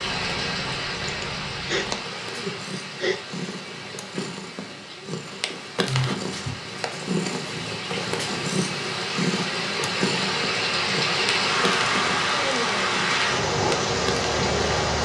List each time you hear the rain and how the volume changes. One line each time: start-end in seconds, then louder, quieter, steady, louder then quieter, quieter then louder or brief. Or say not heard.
0.0-15.0 quieter then louder.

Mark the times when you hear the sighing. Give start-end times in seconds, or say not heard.
1.1-3.2, 5.8-6.5, 12.2-12.8.